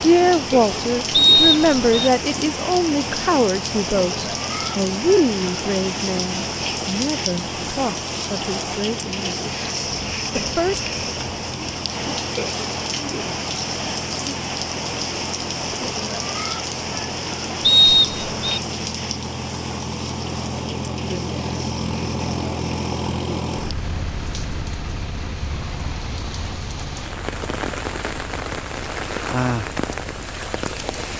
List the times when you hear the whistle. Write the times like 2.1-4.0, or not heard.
1.1-2.1, 17.6-18.6.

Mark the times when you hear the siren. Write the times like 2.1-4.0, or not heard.
not heard.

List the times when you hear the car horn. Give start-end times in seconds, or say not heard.
not heard.